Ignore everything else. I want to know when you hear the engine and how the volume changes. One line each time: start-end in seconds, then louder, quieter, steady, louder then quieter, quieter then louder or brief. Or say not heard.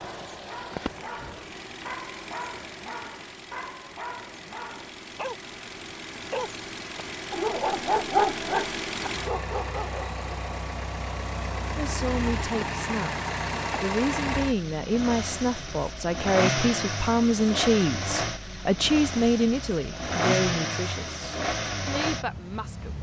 0.0-22.9 louder.